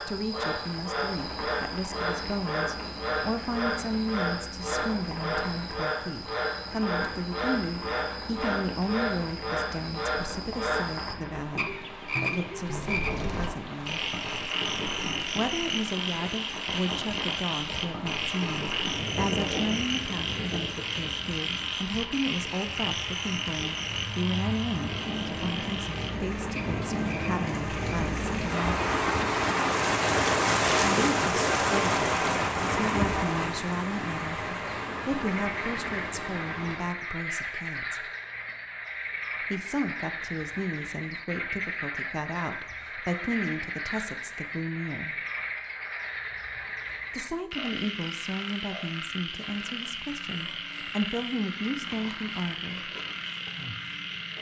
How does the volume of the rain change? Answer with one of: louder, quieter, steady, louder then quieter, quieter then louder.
louder.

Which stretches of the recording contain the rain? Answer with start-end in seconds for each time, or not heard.
0.0-37.0.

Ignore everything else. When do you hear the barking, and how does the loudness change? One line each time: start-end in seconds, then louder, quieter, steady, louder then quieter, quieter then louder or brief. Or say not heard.
not heard.